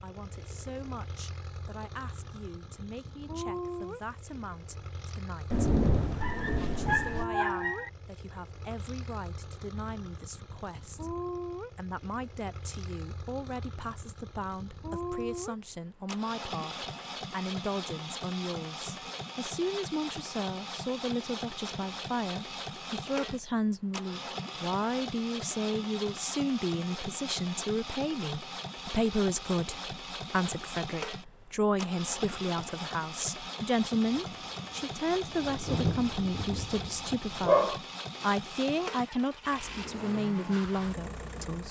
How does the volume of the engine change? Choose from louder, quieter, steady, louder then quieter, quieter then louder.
steady.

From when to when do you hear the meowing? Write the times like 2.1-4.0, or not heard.
not heard.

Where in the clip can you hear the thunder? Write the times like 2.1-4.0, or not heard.
5.5-7.2, 34.0-37.5.